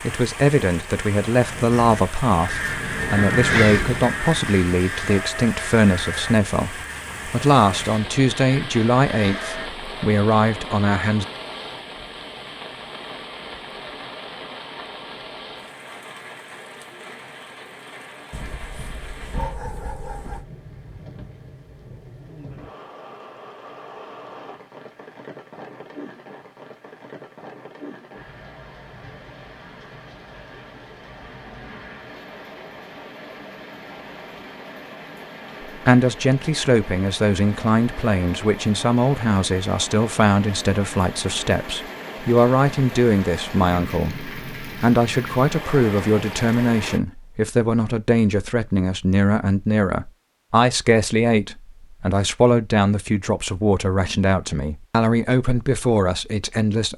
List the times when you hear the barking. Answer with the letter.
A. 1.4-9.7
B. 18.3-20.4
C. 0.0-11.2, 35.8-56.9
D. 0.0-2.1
B.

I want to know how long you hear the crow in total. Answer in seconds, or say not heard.
8 s.